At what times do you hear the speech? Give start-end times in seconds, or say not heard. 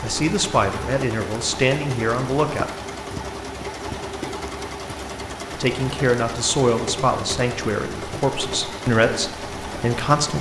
0.0-2.7, 5.5-10.3.